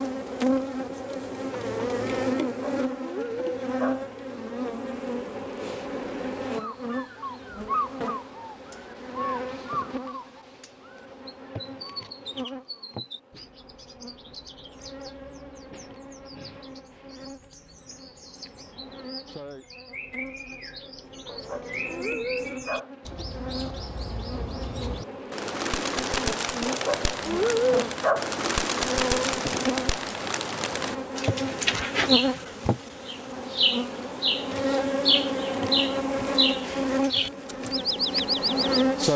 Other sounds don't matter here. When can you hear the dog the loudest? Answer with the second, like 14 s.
28 s.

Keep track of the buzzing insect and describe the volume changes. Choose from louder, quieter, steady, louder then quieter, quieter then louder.
quieter then louder.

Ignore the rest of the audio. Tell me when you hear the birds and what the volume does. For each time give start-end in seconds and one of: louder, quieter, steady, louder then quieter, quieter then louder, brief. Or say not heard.
6.5-39.1 quieter then louder.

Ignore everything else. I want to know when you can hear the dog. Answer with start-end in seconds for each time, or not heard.
2.4-4.0, 21.2-22.9, 26.6-28.3.